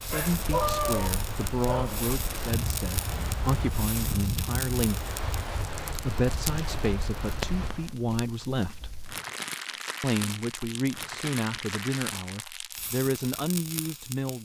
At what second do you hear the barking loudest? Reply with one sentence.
The volume of the barking peaks at 1 second.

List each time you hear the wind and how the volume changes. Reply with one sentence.
The wind can be heard from 0.0 to 7.9 s, at a steady volume.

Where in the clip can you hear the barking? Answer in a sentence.
You can hear the barking from 0.1 to 2.0 s.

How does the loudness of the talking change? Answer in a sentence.
The loudness of the talking stays about the same.